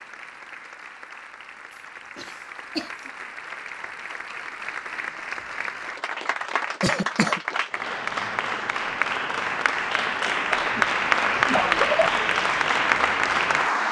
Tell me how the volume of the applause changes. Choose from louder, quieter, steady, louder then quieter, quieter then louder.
louder.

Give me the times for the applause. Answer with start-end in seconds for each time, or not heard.
0.0-13.8.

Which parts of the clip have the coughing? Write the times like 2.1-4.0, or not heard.
2.1-3.1, 6.8-7.4, 10.5-12.1.